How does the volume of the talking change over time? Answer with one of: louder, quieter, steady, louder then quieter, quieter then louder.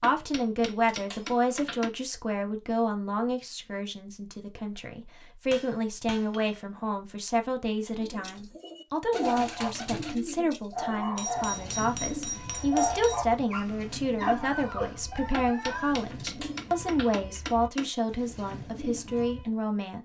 steady.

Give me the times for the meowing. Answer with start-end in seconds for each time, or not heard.
not heard.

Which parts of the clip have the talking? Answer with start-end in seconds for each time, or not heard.
0.0-20.0.